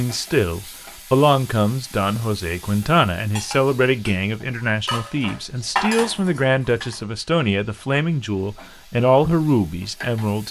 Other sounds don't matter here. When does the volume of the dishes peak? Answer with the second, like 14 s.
6 s.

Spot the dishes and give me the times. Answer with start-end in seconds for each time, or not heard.
3.4-7.0.